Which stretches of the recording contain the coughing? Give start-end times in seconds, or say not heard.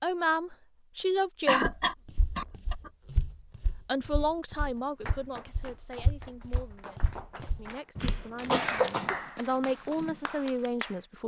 1.4-2.9, 8.0-9.2.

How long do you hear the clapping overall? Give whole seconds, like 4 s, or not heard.
6 s.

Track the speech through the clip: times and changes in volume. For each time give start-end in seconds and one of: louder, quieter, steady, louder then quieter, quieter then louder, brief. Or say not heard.
0.0-1.6 brief
3.9-11.2 quieter then louder.